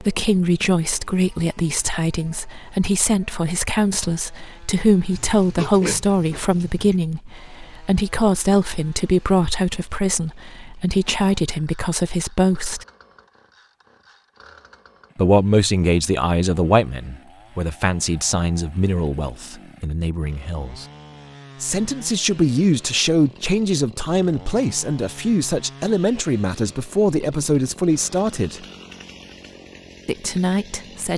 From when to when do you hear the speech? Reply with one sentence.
You can hear the speech from 0.0 to 12.8 s, from 15.2 to 20.9 s, from 21.6 to 28.6 s and from 30.1 to 31.1 s.